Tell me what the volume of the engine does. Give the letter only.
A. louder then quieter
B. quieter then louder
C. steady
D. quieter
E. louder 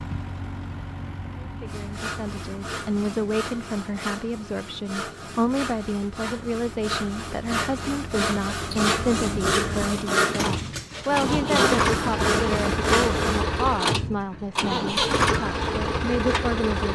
B.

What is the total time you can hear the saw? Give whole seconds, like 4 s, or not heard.
12 s.